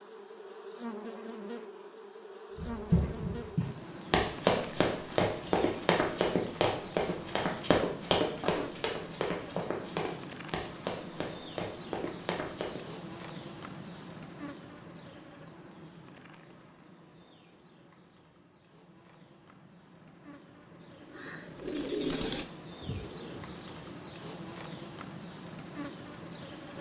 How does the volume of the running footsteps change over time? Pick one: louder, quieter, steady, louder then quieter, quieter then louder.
quieter.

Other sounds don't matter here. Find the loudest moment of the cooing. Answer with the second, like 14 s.
22 s.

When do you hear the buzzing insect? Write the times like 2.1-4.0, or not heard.
0.0-26.7.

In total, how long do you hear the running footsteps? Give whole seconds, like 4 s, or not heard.
10 s.